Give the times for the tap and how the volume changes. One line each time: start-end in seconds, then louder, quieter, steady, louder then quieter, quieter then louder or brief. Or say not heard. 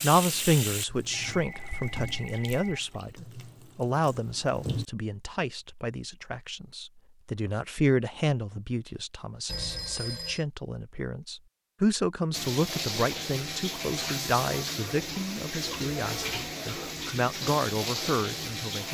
0.0-4.8 quieter
12.3-18.8 steady.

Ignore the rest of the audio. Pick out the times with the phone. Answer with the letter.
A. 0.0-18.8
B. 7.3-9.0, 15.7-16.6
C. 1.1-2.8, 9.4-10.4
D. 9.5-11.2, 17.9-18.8
C.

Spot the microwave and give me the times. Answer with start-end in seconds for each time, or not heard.
not heard.